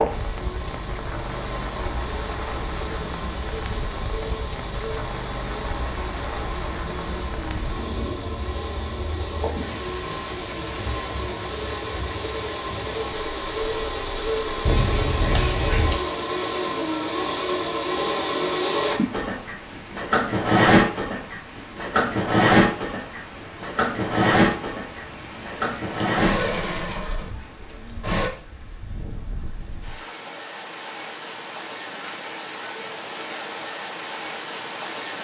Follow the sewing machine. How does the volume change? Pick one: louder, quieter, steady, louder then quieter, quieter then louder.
louder.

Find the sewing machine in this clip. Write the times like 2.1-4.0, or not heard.
0.0-28.3.